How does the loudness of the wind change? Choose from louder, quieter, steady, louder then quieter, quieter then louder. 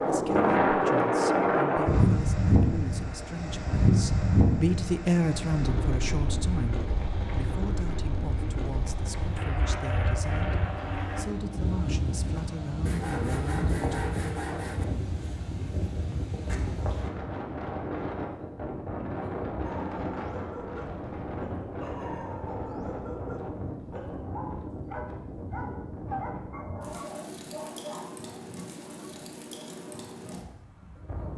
quieter.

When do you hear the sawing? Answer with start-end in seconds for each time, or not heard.
12.8-14.8.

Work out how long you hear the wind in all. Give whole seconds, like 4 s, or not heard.
31 s.